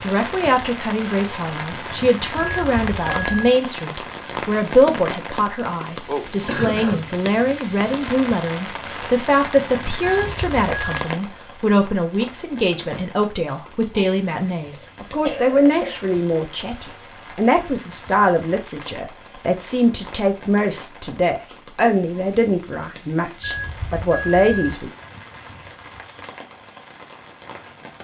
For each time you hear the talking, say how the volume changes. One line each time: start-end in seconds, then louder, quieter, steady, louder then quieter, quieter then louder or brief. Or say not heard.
0.0-24.9 steady.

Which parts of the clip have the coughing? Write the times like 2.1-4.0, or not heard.
6.5-7.1, 14.7-15.9.